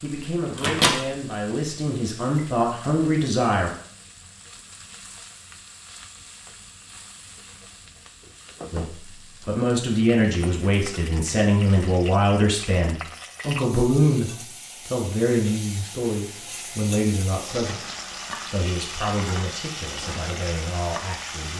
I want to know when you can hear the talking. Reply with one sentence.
You can hear the talking from 0.0 to 3.7 s and from 8.7 to 21.5 s.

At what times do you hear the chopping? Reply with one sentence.
The chopping can't be heard in this clip.